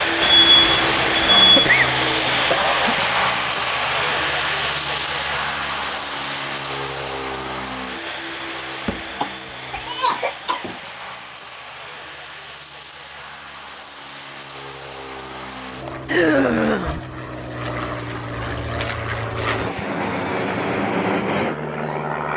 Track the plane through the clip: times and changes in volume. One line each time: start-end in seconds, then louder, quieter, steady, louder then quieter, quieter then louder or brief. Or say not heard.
0.0-22.3 quieter then louder.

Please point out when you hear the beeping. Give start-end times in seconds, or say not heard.
0.2-1.6.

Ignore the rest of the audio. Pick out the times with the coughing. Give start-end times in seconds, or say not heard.
1.2-2.9, 8.8-10.8, 16.1-17.0.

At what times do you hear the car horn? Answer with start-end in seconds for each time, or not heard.
not heard.